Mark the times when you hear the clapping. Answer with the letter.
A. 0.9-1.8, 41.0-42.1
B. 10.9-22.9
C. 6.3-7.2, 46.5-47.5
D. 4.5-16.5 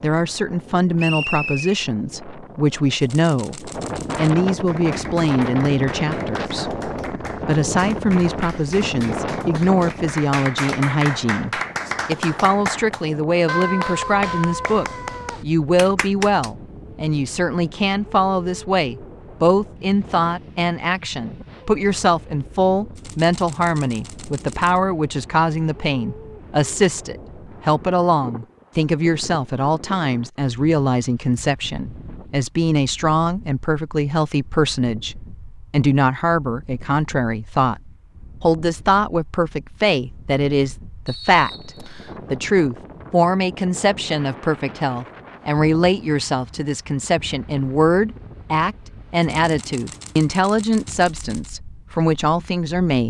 D.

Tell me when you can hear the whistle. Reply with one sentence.
The whistle can be heard from 0.9 to 1.8 s and from 41.0 to 42.1 s.